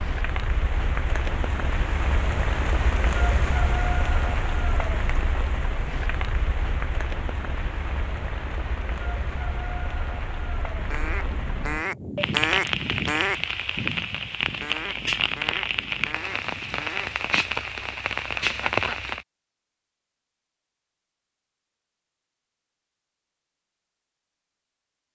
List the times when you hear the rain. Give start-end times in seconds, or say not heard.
0.0-19.2.